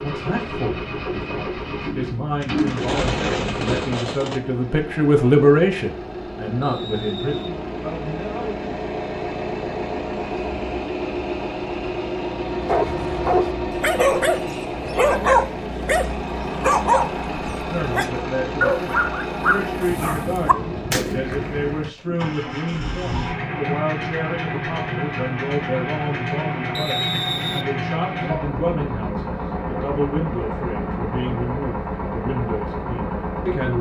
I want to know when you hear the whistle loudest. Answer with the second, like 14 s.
27 s.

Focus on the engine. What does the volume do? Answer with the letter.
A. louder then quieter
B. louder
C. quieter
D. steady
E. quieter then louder
D.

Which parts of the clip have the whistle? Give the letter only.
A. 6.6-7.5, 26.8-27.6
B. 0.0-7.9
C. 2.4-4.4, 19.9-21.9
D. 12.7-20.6
A.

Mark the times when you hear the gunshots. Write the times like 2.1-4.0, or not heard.
2.4-4.4, 19.9-21.9.